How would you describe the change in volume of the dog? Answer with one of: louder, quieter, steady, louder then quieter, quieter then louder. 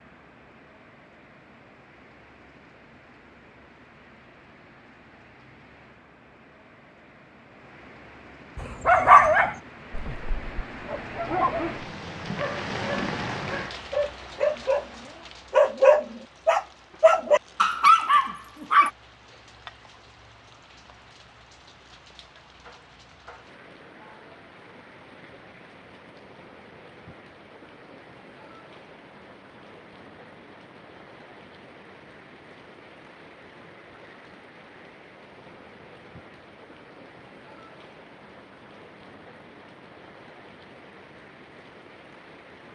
quieter then louder.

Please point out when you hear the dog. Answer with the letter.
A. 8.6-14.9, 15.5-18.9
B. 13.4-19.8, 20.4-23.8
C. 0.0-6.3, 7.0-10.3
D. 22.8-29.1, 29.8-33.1
A.